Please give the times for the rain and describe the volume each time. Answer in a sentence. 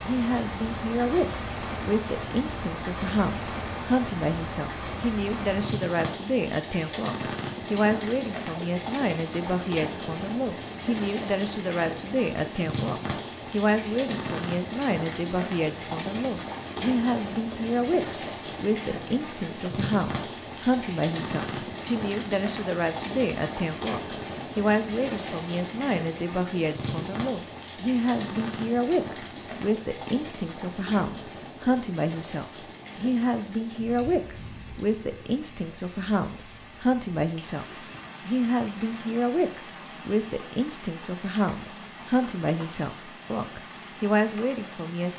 You can hear the rain from 0.0 to 45.1 s, getting quieter.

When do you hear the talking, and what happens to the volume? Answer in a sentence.
You can hear the talking from 0.0 to 45.1 s, at a steady volume.